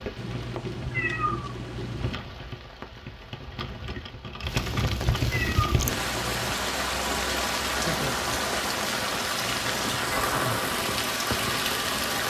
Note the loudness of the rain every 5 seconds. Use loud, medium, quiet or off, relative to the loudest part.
medium, loud, loud.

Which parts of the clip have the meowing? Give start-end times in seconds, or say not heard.
0.1-2.1, 4.5-6.5, 9.3-10.0.